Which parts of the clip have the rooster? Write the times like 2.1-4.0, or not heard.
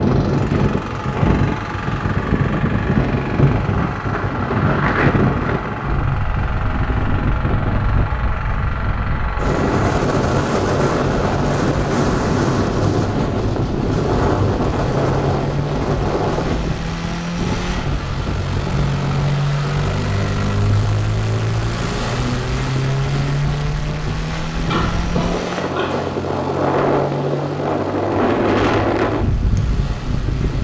not heard.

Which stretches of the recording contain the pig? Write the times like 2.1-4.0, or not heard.
24.6-26.2.